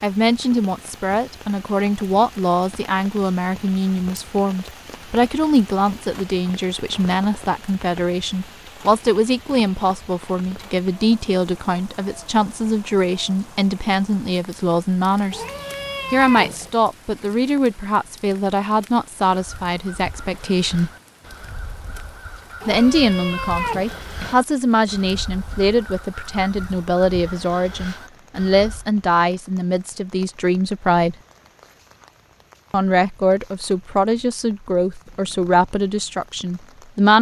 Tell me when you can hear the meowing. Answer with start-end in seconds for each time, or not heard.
15.3-16.8, 22.6-24.4.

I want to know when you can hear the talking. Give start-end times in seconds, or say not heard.
0.0-15.4, 16.1-20.9, 22.6-31.1, 32.7-37.1.